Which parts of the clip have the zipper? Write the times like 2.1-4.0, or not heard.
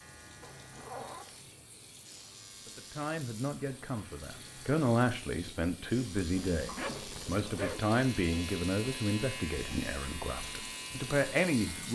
0.4-1.5, 6.3-7.8.